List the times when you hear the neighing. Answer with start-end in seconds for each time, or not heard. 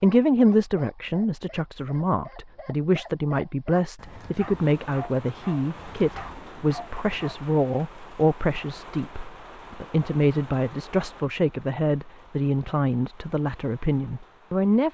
not heard.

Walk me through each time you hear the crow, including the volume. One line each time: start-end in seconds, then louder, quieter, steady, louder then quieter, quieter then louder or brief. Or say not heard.
not heard.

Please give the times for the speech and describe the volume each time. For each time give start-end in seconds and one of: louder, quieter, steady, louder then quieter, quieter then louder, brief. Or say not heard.
0.0-14.9 steady.